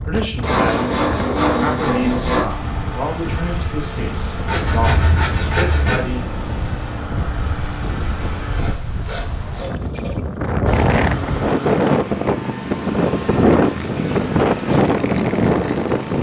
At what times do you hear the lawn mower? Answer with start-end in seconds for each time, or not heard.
2.5-8.7, 10.7-16.1.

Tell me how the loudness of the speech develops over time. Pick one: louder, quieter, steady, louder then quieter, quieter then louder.
steady.